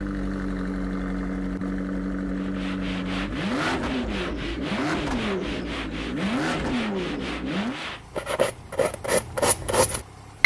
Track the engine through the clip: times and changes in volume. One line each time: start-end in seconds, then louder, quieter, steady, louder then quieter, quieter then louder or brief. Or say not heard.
0.0-10.4 quieter.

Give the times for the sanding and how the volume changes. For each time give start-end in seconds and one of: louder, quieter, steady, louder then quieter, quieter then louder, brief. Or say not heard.
2.4-10.4 louder.